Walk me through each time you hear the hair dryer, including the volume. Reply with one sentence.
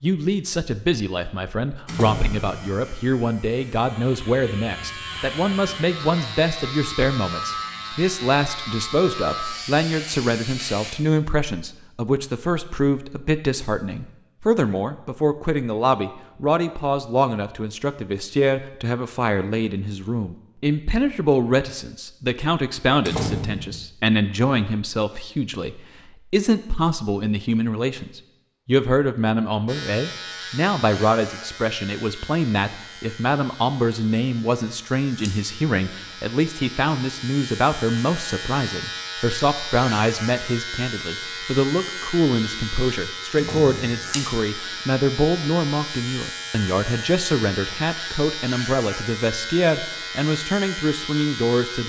You can't hear the hair dryer here.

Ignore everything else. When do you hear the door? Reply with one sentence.
You can hear the door from 1.9 to 2.5 s, from 23.1 to 23.9 s and from 43.4 to 44.0 s.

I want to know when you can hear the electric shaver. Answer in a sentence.
The electric shaver can be heard from 1.9 to 10.9 s and from 29.6 to 51.8 s.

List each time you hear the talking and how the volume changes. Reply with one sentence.
You can hear the talking from 0.0 to 51.8 s, at a steady volume.